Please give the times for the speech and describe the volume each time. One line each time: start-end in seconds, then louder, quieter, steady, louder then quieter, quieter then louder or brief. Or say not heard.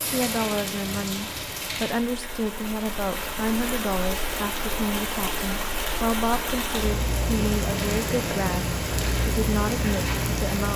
0.1-10.7 steady.